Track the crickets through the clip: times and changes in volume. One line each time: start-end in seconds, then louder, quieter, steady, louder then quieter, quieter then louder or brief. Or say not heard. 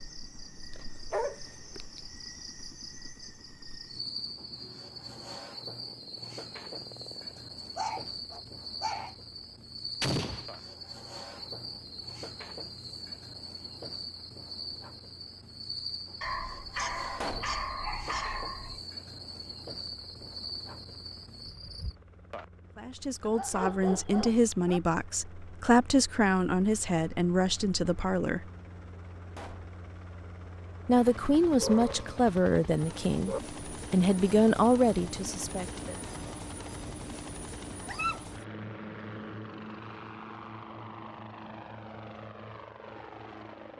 0.0-21.9 steady.